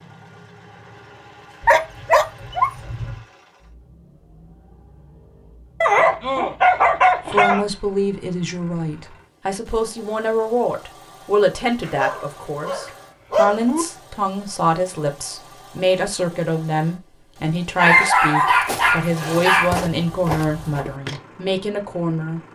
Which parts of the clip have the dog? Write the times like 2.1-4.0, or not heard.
1.6-3.2, 5.8-7.7, 11.8-13.8, 17.8-19.8.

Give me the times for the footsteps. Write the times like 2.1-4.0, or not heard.
18.6-21.2.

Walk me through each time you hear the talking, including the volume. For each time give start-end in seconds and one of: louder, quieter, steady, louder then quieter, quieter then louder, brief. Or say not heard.
7.2-22.5 steady.